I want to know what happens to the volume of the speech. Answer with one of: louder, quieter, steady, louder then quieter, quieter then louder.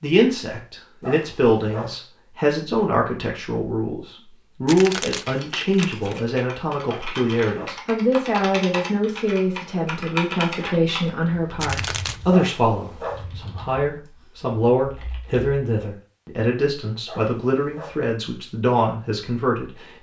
steady.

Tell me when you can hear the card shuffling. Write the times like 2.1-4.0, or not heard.
4.7-6.2, 11.6-12.3.